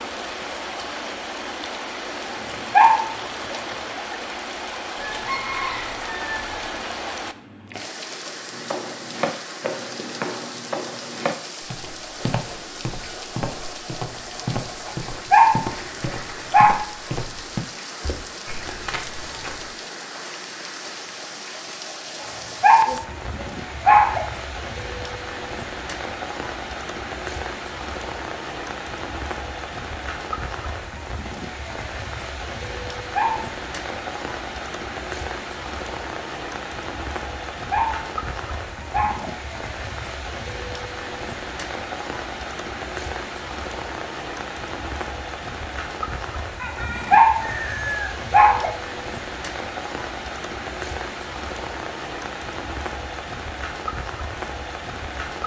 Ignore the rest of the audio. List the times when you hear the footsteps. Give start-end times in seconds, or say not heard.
8.5-19.7.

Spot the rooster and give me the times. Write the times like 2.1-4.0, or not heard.
5.0-6.8, 46.5-48.1.